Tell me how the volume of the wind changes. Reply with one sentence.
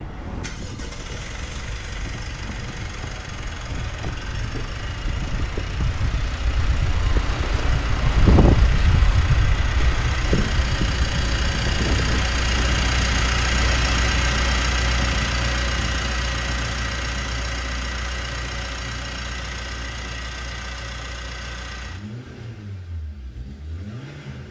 The volume of the wind goes up, then down.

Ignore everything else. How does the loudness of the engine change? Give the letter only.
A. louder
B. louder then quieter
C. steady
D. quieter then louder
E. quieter
B.